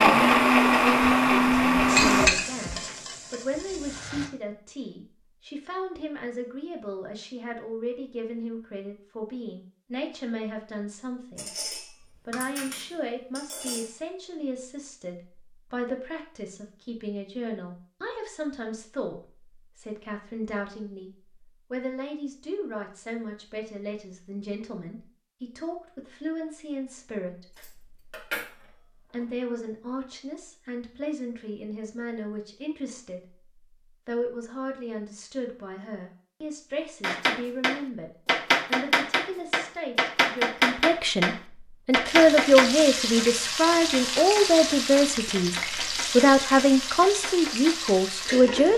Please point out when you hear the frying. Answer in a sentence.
You can hear the frying from 1.9 to 4.3 s and from 42.0 to 48.7 s.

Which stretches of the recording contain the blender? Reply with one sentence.
The blender can be heard from 0.0 to 2.3 s.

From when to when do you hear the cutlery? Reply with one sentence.
You can hear the cutlery from 11.3 to 13.9 s and from 27.6 to 28.5 s.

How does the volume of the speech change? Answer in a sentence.
The volume of the speech goes up.